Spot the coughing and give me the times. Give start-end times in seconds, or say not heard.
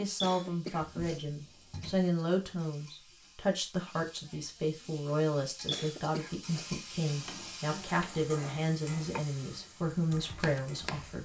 0.2-1.2, 5.7-6.7.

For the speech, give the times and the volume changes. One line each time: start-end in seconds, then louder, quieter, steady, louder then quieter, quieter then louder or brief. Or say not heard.
0.0-11.2 steady.